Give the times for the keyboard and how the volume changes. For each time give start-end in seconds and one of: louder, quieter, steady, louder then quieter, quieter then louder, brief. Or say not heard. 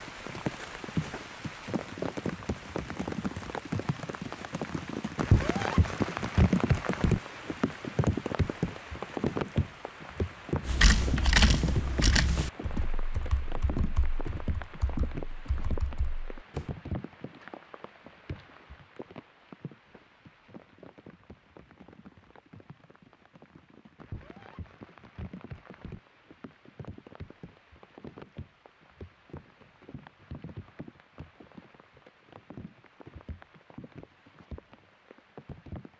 10.7-16.7 quieter.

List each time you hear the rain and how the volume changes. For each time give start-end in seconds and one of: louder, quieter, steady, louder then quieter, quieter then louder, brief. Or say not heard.
0.0-35.9 quieter.